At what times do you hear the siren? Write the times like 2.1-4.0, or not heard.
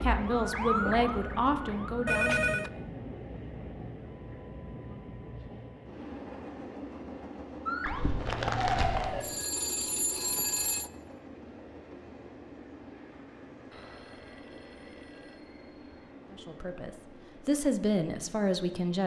0.2-2.0, 7.7-9.2.